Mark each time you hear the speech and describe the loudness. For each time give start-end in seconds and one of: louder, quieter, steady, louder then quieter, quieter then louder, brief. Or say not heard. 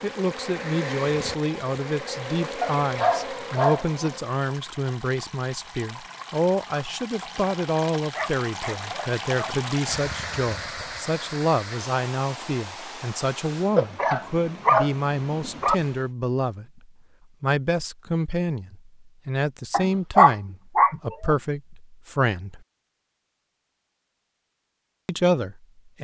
0.0-22.6 steady
25.1-26.0 brief.